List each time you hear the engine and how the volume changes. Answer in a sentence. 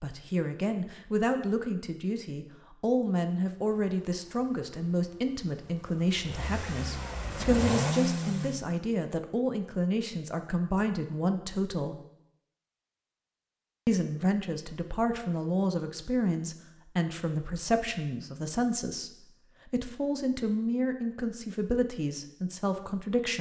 The engine can be heard from 3.5 to 8.7 s, getting louder.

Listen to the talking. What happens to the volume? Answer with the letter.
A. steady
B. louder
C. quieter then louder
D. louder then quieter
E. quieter
A.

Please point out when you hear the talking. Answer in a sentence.
You can hear the talking from 0.0 to 12.0 s and from 13.8 to 23.3 s.